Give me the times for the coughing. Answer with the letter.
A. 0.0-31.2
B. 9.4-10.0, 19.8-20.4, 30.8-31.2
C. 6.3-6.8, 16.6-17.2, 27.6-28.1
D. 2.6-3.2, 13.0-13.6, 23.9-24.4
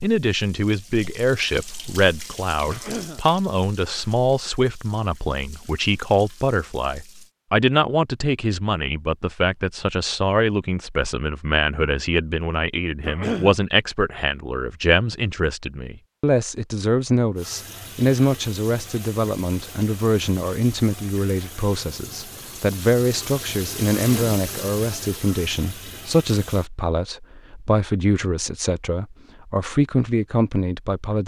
D.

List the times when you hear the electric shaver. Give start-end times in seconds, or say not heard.
not heard.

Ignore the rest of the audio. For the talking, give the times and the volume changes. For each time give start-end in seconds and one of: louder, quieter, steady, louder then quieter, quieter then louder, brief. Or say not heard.
0.0-31.2 steady.